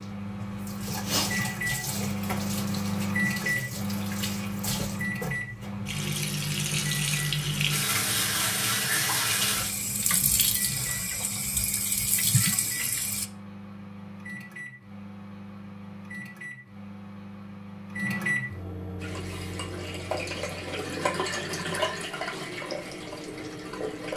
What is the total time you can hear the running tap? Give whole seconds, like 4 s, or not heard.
18 s.